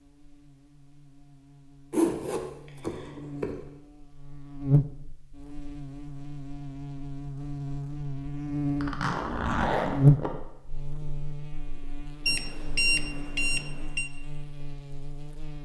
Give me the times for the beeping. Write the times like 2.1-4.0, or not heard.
12.2-14.1.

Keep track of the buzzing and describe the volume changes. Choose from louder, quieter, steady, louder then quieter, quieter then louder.
louder then quieter.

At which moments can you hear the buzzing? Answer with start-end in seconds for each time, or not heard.
0.0-15.5.